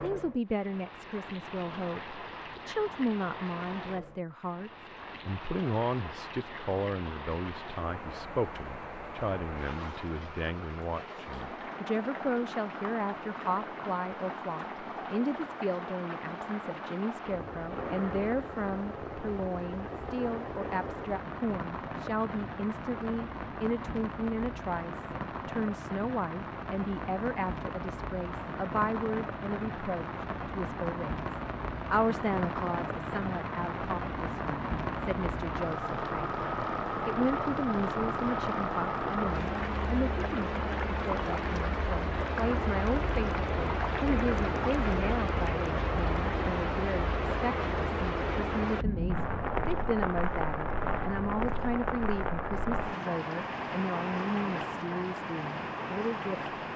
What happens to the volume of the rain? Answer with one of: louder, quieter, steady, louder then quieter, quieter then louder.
louder.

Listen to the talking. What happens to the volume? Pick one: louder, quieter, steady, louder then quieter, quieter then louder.
steady.